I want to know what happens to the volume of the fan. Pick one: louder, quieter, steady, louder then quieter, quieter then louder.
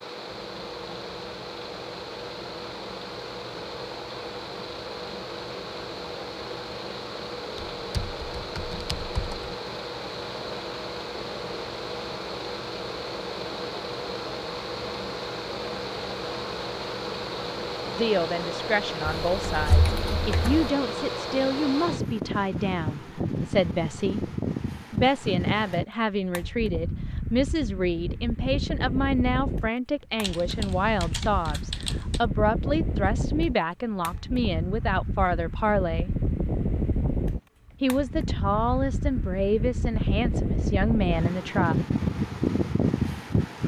louder.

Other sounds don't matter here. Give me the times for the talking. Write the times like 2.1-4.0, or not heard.
17.9-24.3, 24.9-36.1, 37.8-41.8.